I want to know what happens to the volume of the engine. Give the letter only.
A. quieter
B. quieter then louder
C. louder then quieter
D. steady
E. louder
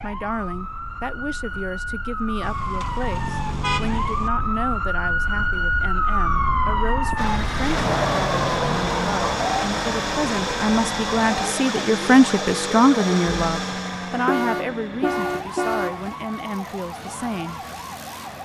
A.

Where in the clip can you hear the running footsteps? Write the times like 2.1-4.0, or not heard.
not heard.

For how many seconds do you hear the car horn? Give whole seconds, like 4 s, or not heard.
4 s.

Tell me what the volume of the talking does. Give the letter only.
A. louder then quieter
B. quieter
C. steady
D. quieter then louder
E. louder
A.